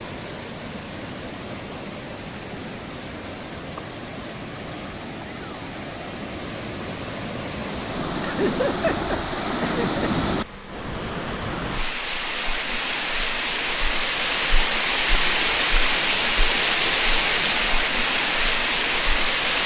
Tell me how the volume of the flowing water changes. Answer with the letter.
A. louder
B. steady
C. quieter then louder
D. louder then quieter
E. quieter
A.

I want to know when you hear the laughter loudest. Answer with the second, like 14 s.
9 s.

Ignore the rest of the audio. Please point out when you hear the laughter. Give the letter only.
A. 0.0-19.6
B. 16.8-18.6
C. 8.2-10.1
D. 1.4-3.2
C.